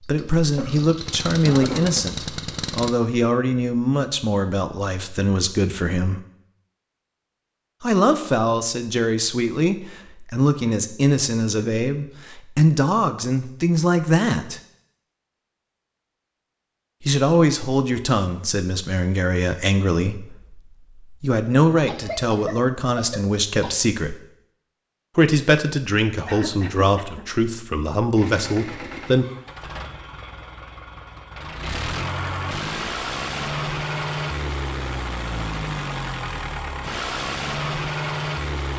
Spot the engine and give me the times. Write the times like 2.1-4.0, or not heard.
0.0-3.0, 28.1-38.7.